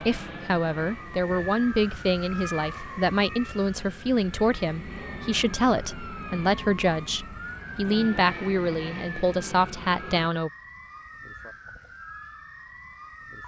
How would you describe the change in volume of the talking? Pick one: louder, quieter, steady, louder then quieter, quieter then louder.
steady.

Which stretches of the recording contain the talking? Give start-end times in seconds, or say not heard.
0.0-10.5.